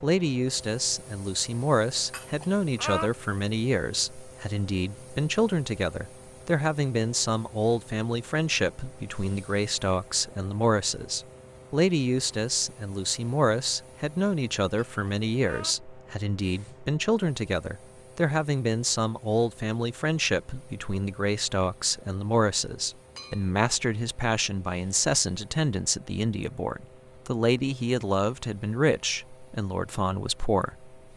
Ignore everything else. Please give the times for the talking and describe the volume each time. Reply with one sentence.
The talking can be heard from 0.0 to 30.9 s, at a steady volume.